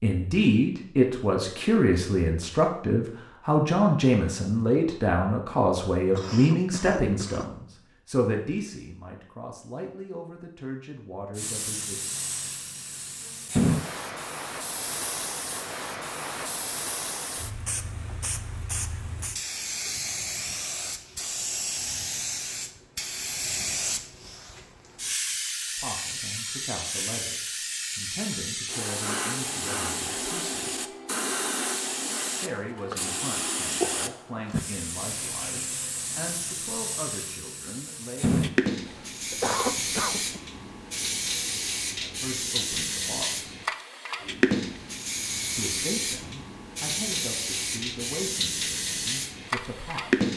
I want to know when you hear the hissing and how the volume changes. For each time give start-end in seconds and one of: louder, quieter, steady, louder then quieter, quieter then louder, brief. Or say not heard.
11.3-50.3 steady.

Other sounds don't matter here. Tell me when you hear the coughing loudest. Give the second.
40 s.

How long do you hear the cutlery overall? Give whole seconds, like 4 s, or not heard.
not heard.